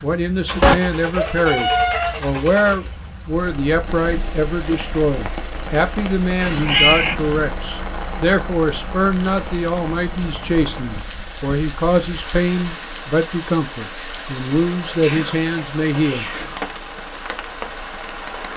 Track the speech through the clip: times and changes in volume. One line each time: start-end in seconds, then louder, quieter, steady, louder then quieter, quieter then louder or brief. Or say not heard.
0.0-16.2 steady.